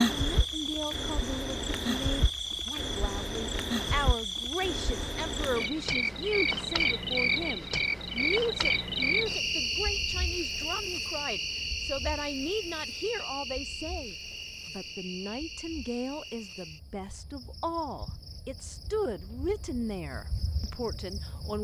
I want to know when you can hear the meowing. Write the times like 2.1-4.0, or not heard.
not heard.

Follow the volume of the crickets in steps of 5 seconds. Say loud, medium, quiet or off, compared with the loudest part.
loud, loud, medium, quiet, quiet.